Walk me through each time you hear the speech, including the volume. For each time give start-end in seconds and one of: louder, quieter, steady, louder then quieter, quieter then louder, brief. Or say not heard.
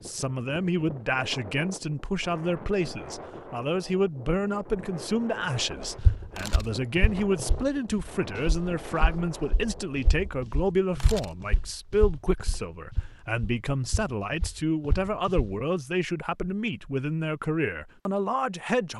0.0-18.9 steady.